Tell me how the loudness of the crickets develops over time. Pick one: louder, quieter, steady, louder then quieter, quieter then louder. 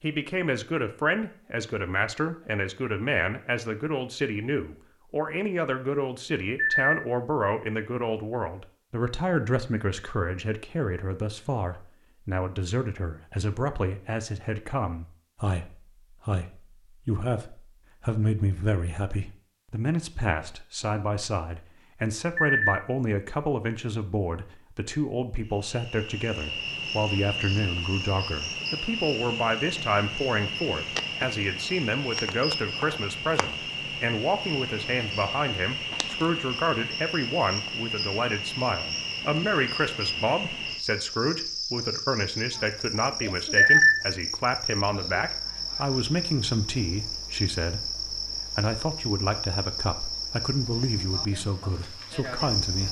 steady.